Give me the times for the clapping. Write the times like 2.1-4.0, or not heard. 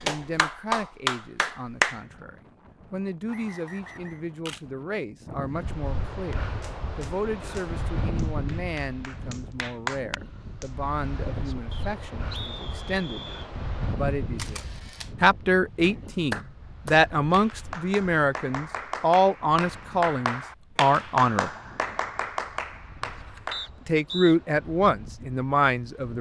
0.0-2.0, 6.3-10.9, 15.8-23.7.